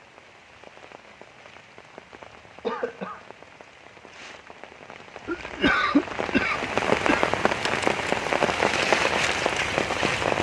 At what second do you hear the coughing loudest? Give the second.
6 s.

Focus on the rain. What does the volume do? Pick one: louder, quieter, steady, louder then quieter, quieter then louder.
louder.